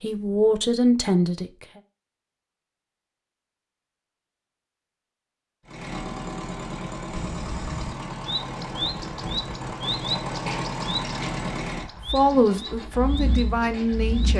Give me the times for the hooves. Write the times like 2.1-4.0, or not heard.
not heard.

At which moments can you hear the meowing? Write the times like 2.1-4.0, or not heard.
not heard.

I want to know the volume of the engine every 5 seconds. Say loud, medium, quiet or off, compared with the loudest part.
off, loud, loud.